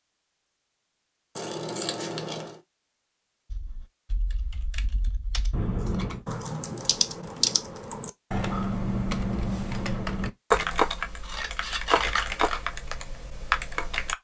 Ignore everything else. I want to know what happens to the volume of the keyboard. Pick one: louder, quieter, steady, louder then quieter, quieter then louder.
louder.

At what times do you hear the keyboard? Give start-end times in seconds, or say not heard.
3.5-14.1.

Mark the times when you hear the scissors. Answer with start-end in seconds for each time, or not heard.
1.4-2.5, 5.5-6.2, 11.2-12.6.